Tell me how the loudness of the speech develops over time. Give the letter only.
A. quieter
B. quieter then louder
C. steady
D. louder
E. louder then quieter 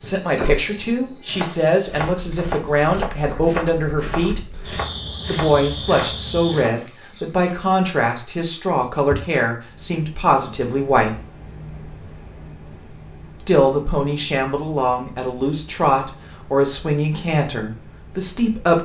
C.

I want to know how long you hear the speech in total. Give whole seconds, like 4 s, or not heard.
16 s.